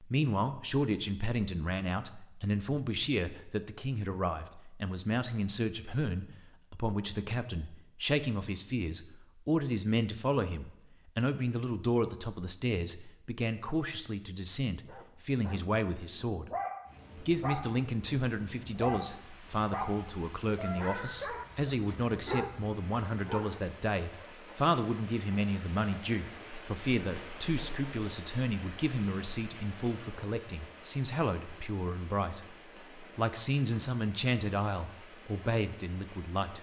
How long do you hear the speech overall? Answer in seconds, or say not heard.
36 s.